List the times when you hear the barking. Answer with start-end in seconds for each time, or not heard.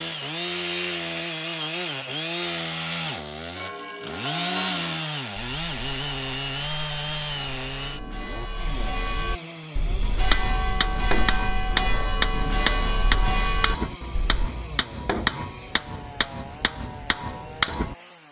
not heard.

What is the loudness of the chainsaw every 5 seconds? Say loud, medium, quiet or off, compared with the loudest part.
loud, loud, quiet, quiet.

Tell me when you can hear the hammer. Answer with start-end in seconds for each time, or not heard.
10.0-17.9.